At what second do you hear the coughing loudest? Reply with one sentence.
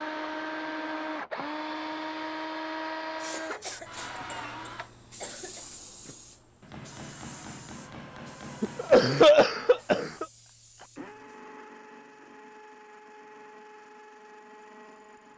The volume of the coughing peaks at 9 seconds.